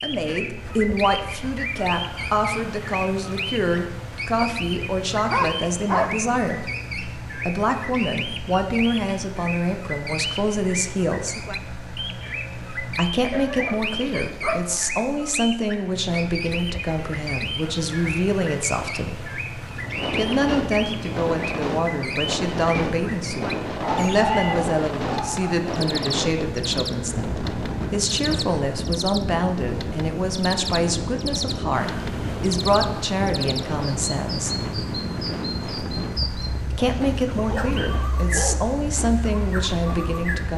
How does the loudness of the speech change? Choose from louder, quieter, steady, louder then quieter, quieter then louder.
steady.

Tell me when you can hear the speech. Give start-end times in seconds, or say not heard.
0.0-6.6, 7.5-11.5, 12.9-19.3, 20.1-34.5, 36.7-40.5.